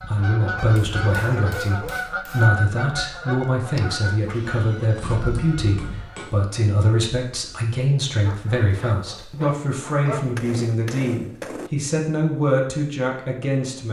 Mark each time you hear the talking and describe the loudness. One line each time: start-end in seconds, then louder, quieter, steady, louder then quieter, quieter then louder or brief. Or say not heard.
0.1-13.8 steady.